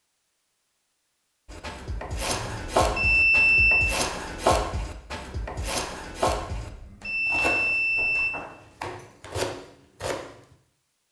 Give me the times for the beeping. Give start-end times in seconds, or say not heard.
2.3-3.9, 6.5-8.3.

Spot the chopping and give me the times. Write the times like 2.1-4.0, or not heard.
1.4-10.6.